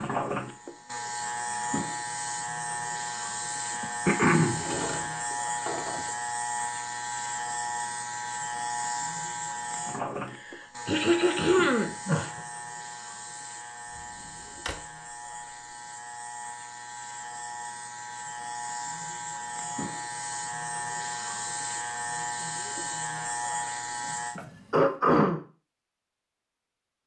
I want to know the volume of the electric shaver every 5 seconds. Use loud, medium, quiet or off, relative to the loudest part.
loud, loud, medium, medium, loud, off.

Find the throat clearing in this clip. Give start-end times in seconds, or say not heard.
3.8-4.6, 10.2-12.4, 24.4-25.4.